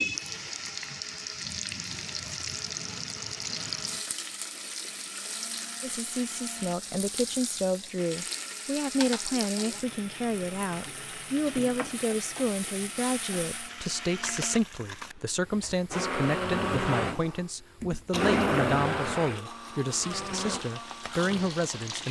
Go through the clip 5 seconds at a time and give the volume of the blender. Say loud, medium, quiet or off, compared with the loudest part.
quiet, quiet, quiet, loud, medium.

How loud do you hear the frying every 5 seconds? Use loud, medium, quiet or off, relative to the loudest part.
loud, loud, medium, quiet, medium.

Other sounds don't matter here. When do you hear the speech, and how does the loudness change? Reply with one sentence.
You can hear the speech from 5.8 to 22.0 s, at a steady volume.